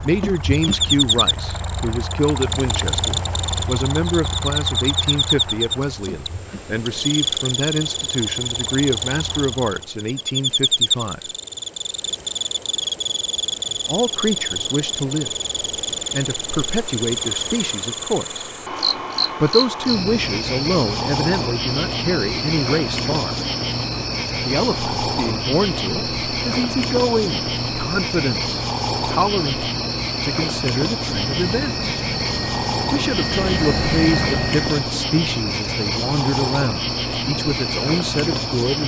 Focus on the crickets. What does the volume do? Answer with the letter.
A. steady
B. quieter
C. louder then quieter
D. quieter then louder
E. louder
A.